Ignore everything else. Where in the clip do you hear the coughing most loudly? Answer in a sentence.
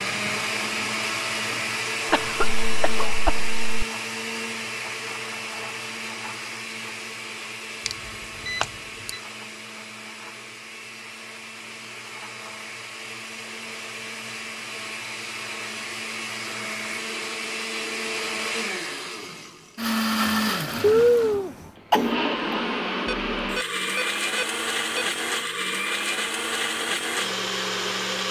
The volume of the coughing peaks at 21 seconds.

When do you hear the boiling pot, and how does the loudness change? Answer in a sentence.
You can't hear the boiling pot here.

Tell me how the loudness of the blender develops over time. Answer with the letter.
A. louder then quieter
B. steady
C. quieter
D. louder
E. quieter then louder
E.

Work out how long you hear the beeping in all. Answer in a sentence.
The beeping can be heard for 3 seconds in total.